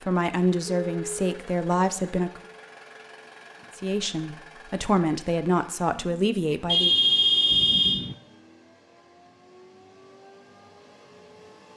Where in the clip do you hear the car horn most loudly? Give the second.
7 s.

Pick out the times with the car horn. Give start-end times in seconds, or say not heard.
0.6-1.2, 6.7-8.0.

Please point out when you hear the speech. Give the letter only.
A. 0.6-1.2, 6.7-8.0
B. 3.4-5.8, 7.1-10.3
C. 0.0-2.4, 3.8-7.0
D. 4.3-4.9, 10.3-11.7
C.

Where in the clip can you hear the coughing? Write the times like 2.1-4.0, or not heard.
not heard.